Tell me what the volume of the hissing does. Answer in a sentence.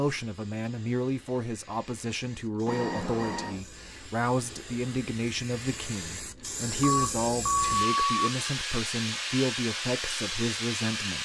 The volume of the hissing goes up.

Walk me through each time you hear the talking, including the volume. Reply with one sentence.
The talking can be heard from 0.0 to 11.2 s, at a steady volume.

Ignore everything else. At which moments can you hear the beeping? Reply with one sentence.
You can hear the beeping from 2.6 to 3.6 s and from 6.8 to 8.3 s.